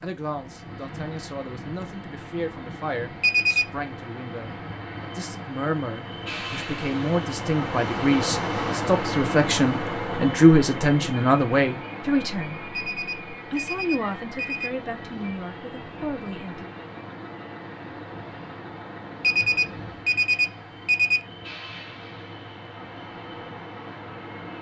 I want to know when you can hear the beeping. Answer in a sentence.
The beeping can be heard from 3.2 to 3.6 s, from 12.8 to 14.7 s and from 19.2 to 21.2 s.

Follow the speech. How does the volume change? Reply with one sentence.
The loudness of the speech goes up, then down.